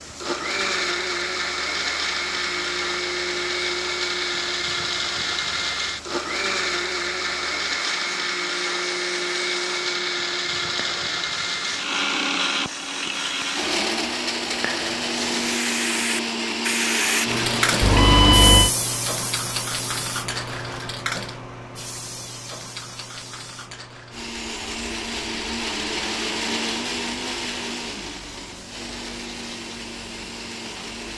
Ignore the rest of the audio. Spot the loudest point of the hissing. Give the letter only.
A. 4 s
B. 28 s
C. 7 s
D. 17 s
D.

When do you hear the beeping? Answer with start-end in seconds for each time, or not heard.
17.8-18.7.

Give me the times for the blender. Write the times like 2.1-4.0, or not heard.
0.0-18.6, 24.1-31.1.